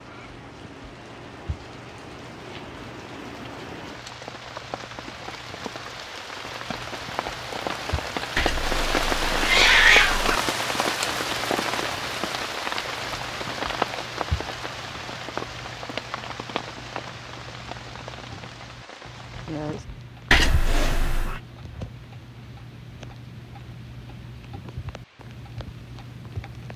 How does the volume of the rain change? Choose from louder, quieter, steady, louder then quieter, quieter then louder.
louder then quieter.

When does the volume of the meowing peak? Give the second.
10 s.